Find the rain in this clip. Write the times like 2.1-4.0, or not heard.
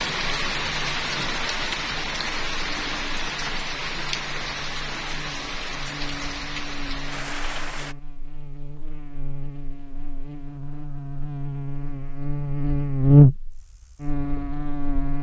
0.0-8.0.